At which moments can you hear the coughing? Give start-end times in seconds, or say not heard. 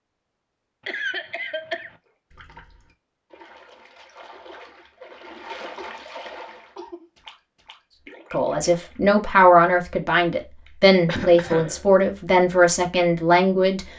0.8-1.9, 5.8-7.0, 11.1-11.8.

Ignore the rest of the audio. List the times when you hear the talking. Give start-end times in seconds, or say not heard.
8.3-13.8.